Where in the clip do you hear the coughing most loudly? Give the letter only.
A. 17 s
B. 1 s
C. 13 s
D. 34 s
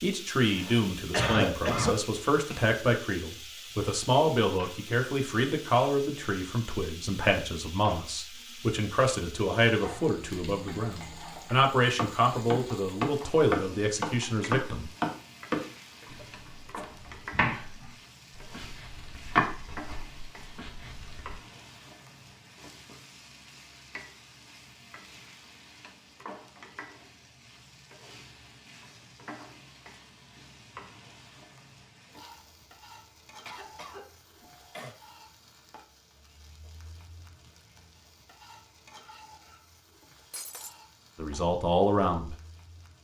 B.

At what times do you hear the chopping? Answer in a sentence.
The chopping can be heard from 9.8 to 21.4 s.